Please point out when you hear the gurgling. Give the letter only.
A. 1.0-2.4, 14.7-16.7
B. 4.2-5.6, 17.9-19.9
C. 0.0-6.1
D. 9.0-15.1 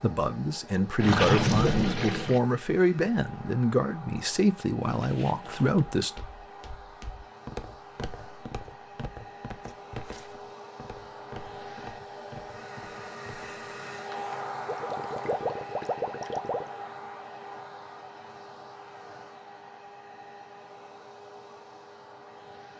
A.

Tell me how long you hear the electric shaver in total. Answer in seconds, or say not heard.
not heard.